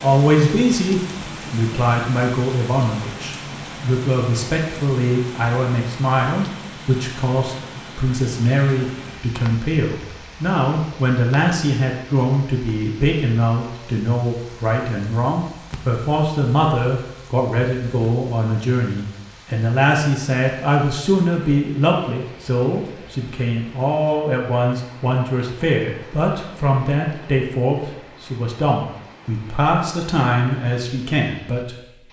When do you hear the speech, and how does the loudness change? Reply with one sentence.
The speech can be heard from 0.0 to 31.8 s, at a steady volume.